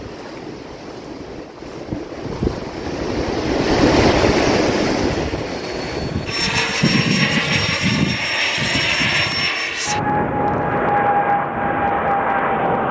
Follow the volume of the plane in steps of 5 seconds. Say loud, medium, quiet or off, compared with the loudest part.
off, loud, loud.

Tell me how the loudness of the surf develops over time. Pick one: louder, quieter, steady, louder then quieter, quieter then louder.
louder then quieter.